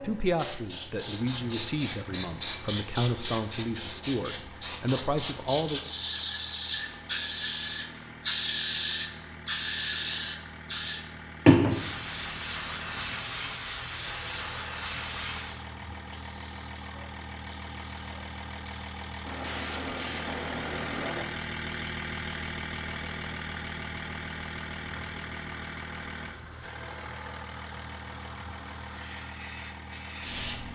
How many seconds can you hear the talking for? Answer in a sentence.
You can hear the talking for 6 seconds altogether.